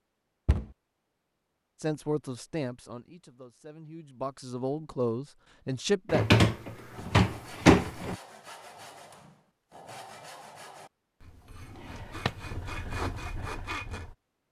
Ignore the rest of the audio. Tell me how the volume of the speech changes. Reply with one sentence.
The loudness of the speech goes down, then up.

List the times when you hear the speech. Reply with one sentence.
The speech can be heard from 1.8 to 6.2 s.